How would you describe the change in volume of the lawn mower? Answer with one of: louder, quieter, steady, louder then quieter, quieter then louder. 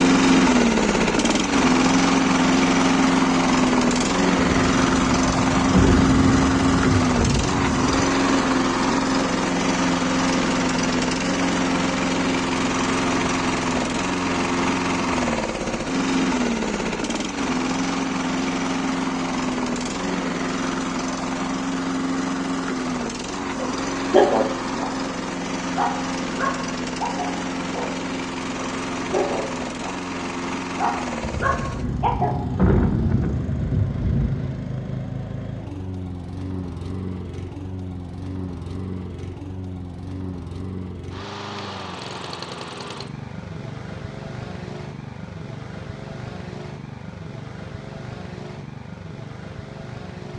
quieter.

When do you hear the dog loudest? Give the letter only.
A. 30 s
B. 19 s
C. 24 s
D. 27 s
C.